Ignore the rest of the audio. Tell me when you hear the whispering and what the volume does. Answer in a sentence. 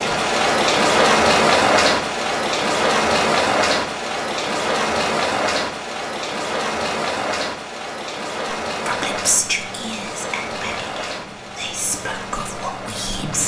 The whispering can be heard from 8.8 to 13.4 s, getting quieter then louder.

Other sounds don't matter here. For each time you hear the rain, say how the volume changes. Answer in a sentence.
The rain can be heard from 0.0 to 13.4 s, getting quieter.